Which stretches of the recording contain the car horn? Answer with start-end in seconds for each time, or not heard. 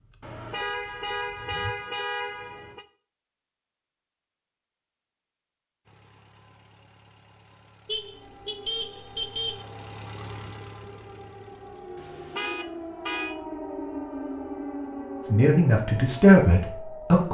0.2-2.9, 7.8-9.7, 11.9-13.3.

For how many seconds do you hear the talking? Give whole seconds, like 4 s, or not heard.
2 s.